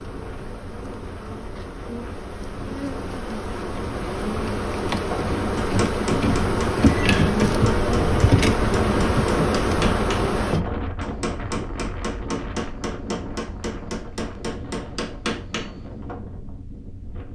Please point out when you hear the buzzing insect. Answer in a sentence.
You can hear the buzzing insect from 0.0 to 10.6 s.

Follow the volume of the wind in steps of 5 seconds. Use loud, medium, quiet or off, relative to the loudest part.
medium, loud, medium, medium.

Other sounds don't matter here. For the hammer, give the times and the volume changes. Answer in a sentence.
The hammer can be heard from 5.1 to 16.2 s, at a steady volume.